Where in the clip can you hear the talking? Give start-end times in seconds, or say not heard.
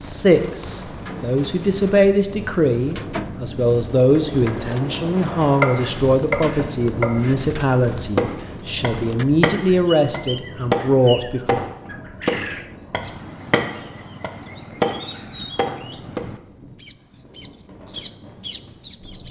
0.1-11.6.